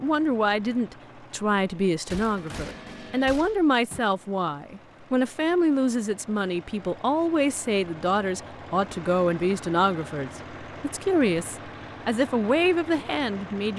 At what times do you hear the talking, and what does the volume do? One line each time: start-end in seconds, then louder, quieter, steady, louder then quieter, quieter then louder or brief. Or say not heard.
0.0-13.7 steady.